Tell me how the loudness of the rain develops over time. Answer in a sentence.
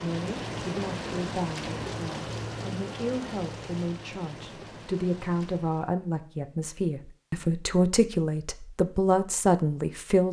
The loudness of the rain goes down.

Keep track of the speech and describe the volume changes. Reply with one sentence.
The volume of the speech goes up.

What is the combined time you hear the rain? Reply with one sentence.
The rain can be heard for 6 seconds in total.